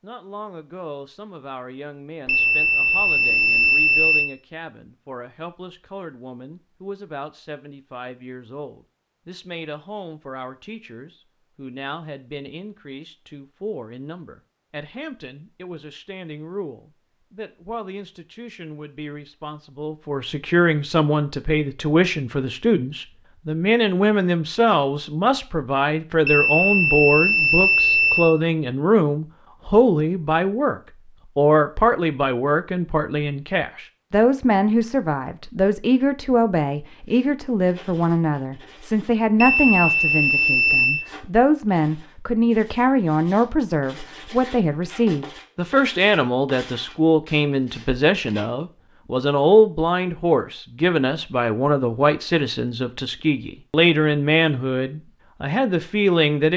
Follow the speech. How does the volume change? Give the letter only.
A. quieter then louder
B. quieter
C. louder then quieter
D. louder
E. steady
D.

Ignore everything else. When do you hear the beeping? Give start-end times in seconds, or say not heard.
2.2-4.3, 26.2-28.4, 39.4-41.0.